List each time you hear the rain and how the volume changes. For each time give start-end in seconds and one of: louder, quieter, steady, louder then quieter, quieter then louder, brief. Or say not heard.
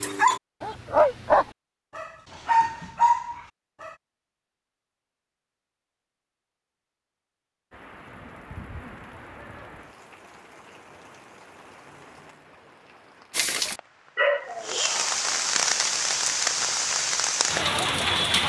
7.7-18.4 quieter then louder.